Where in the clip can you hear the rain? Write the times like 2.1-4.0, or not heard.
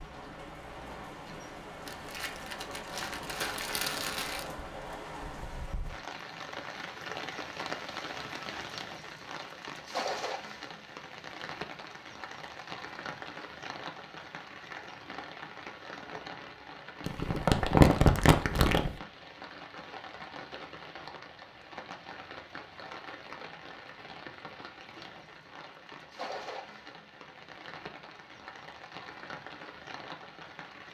0.0-30.8.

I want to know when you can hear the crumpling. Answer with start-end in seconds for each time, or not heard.
1.9-4.5, 17.1-18.9.